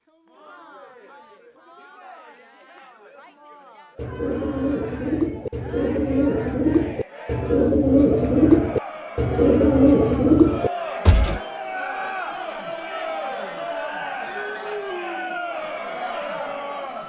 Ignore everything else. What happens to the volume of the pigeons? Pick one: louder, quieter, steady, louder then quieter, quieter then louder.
louder.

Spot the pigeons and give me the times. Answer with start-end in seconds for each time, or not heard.
4.0-11.4.